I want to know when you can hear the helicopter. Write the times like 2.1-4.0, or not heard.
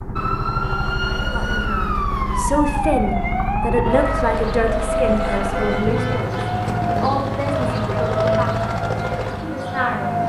0.0-10.2.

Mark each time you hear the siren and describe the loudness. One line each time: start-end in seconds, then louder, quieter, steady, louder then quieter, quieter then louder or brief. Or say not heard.
0.0-10.2 steady.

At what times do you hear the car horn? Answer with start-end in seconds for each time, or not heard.
0.6-1.2, 5.4-6.5.